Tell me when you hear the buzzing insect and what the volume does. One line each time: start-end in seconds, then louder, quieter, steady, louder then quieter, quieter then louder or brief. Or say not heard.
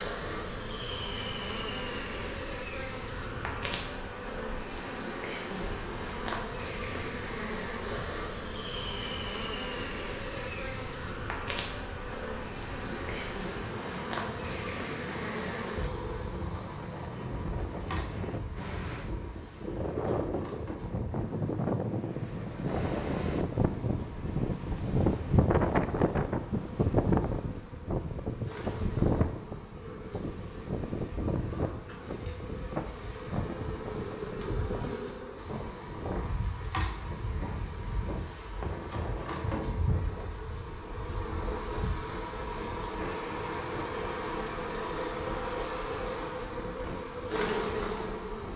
0.0-48.5 quieter then louder.